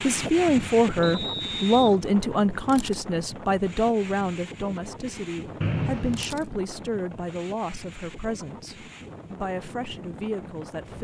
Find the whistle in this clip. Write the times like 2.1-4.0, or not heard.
1.0-1.9, 5.6-6.2.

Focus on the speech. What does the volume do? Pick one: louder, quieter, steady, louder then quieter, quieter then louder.
quieter.